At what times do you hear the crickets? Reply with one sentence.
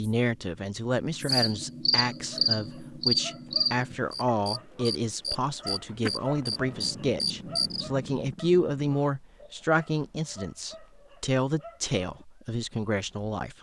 The crickets can be heard from 0.2 to 7.8 s.